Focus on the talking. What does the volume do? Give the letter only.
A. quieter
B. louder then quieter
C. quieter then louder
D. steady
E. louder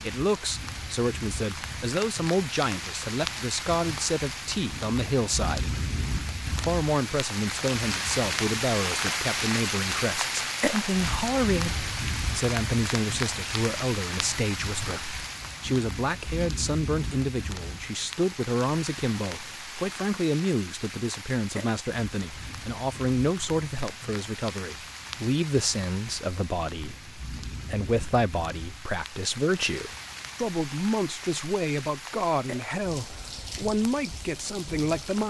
D.